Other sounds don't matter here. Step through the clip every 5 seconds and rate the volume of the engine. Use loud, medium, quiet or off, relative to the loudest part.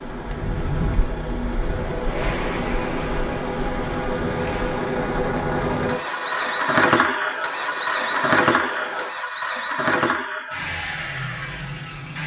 medium, loud, medium.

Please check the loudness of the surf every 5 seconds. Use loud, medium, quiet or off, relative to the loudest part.
loud, loud, off.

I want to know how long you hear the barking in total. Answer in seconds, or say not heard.
not heard.